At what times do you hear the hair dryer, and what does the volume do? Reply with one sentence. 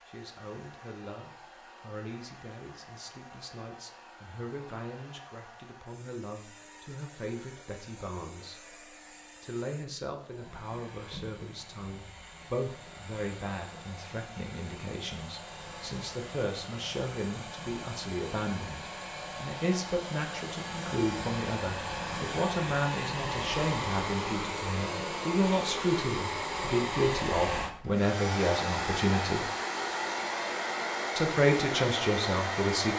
The hair dryer can be heard from 0.0 to 32.9 s, getting louder.